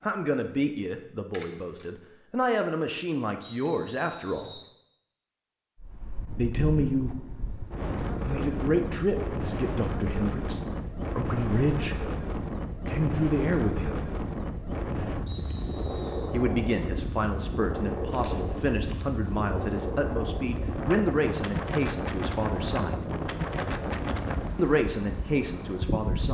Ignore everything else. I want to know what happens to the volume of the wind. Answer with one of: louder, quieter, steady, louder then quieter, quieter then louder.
steady.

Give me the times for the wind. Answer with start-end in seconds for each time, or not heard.
5.8-26.2.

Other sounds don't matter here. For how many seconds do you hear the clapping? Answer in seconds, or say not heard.
not heard.